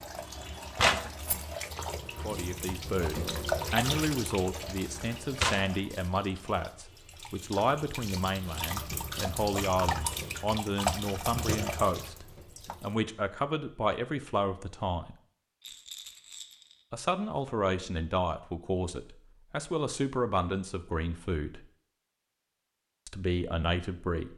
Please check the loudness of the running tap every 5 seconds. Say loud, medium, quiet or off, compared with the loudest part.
loud, loud, loud, off, off.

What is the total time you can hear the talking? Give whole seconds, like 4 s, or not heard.
19 s.